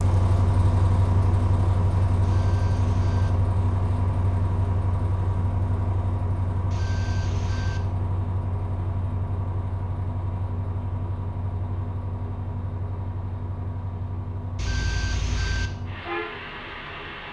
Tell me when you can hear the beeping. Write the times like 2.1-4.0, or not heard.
2.2-3.3, 6.7-7.8, 14.6-15.7.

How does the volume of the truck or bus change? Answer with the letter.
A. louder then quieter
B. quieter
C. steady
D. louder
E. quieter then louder
B.